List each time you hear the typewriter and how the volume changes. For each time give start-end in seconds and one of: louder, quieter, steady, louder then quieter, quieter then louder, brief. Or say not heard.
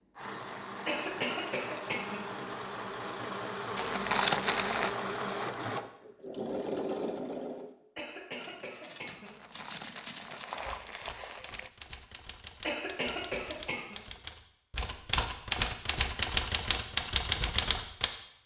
8.0-18.1 louder.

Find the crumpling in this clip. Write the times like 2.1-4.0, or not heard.
3.8-5.0, 9.2-11.7.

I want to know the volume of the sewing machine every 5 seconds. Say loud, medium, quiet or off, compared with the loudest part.
loud, loud, off, off.